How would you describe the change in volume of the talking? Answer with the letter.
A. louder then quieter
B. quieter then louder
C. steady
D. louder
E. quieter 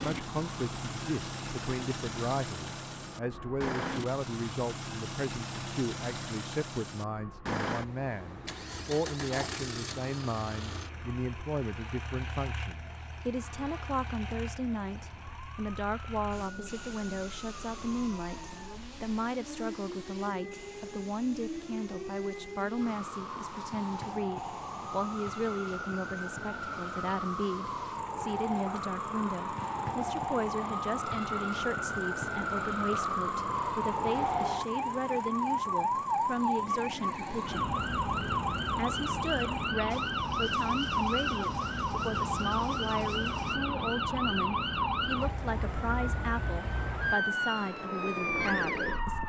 C.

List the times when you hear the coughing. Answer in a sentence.
You can't hear the coughing here.